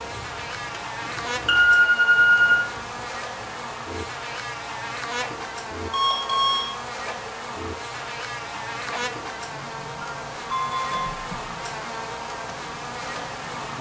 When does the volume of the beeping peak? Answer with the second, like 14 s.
2 s.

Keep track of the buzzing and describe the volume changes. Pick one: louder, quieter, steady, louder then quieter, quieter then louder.
steady.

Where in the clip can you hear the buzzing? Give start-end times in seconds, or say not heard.
0.0-13.7.